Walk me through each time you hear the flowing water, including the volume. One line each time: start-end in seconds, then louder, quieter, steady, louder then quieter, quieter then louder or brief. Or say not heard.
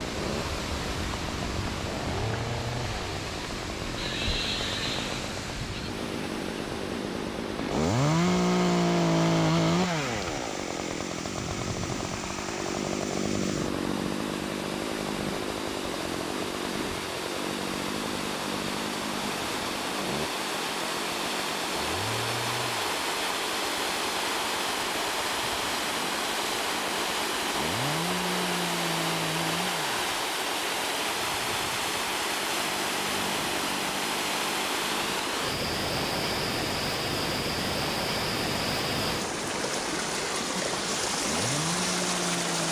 0.0-42.6 louder.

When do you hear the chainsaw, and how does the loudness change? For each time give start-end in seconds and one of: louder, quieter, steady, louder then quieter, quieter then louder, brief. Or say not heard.
0.0-42.6 quieter.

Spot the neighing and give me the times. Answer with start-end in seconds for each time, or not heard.
4.0-5.9.